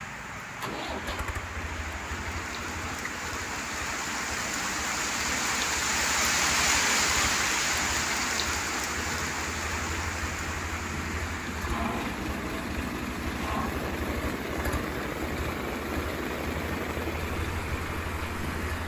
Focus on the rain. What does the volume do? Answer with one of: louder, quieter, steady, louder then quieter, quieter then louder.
louder then quieter.